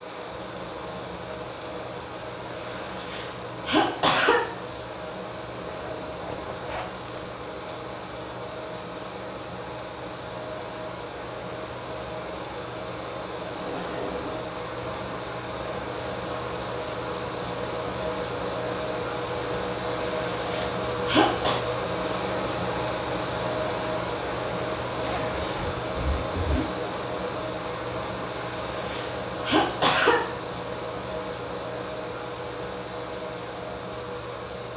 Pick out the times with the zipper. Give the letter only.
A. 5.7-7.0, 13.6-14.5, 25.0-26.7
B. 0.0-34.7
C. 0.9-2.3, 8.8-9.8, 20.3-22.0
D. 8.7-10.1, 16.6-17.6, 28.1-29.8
A.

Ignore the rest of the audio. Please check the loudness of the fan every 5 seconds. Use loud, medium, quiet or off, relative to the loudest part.
medium, medium, medium, loud, loud, loud, medium.